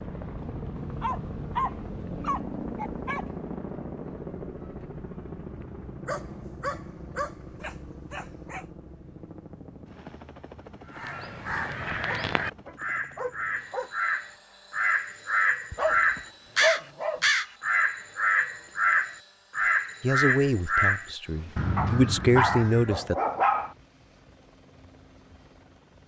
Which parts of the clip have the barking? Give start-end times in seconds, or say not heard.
0.8-3.2, 6.0-8.7, 12.1-13.9, 15.7-17.2, 21.8-23.7.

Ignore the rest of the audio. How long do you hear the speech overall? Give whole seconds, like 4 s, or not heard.
3 s.